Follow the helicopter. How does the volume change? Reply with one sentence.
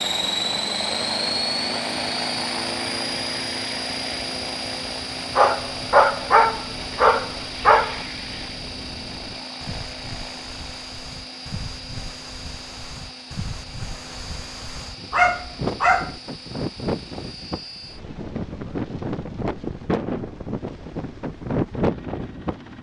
The volume of the helicopter goes down.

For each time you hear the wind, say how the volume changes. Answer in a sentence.
The wind can be heard from 0.0 to 22.7 s, getting louder.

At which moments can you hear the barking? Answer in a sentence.
You can hear the barking from 5.3 to 8.0 s and from 15.1 to 16.1 s.